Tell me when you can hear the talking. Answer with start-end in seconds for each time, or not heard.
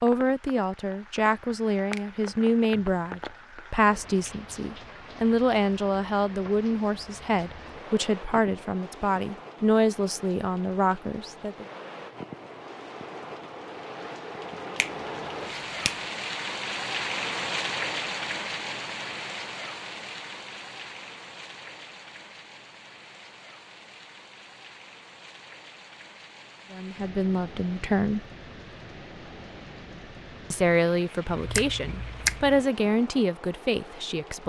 0.0-11.7, 26.7-28.2, 30.5-34.4.